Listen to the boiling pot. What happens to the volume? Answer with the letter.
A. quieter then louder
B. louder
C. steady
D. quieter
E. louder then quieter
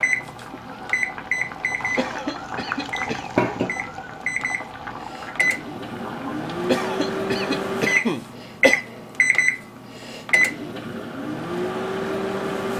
E.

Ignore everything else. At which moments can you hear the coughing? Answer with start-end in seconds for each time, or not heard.
1.9-3.3, 6.7-8.8.